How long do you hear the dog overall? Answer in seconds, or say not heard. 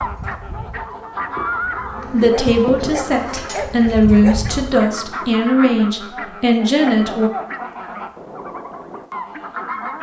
2 s.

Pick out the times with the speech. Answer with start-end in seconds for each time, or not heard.
2.1-7.3.